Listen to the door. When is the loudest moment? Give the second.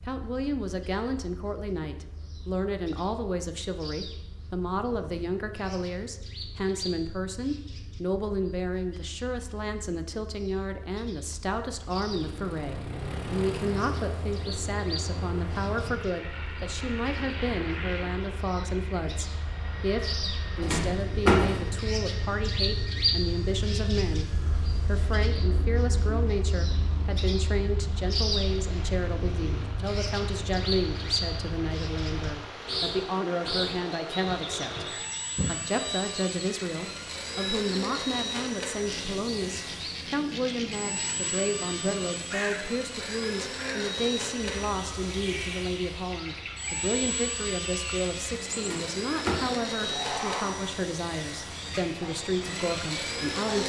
21 s.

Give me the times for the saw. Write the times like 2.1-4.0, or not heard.
not heard.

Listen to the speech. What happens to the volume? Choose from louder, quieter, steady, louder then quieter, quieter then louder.
steady.